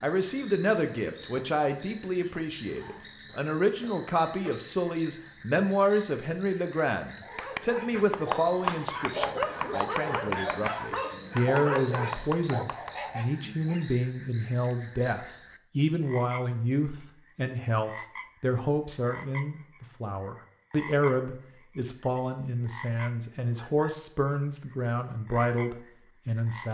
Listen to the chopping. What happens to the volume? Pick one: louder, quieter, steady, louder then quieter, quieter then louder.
quieter.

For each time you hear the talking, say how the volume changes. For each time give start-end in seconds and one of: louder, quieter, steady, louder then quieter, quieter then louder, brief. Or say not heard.
0.0-26.6 steady.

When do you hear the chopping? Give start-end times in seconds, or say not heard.
7.3-13.0.